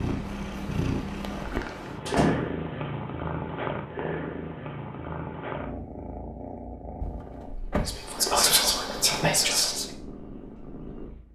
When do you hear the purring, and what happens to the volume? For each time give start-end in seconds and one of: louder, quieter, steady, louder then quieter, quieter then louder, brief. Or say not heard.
0.0-11.2 quieter.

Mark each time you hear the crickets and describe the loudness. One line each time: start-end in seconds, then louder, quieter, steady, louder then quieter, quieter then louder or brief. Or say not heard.
not heard.